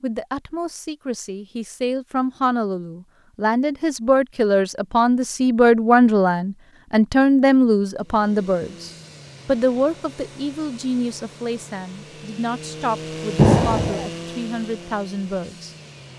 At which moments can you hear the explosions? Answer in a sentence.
You can hear the explosions from 13.3 to 14.1 s.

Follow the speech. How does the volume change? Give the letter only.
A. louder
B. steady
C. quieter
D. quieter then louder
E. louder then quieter
E.